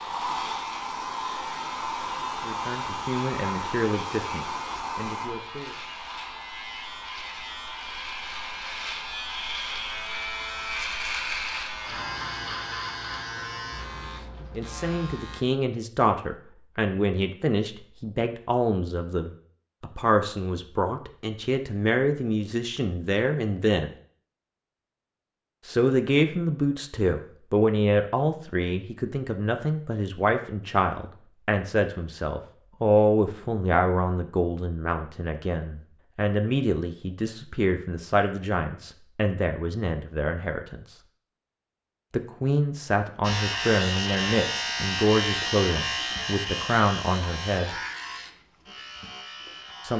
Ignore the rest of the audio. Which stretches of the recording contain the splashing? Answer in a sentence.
The splashing can't be heard in this clip.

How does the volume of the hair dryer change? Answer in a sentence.
The loudness of the hair dryer goes down.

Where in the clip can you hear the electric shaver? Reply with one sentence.
You can hear the electric shaver from 0.0 to 15.4 s and from 43.2 to 49.9 s.